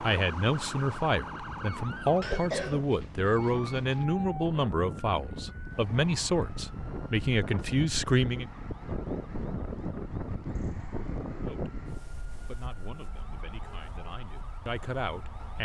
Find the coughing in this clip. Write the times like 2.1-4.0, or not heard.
2.2-4.0.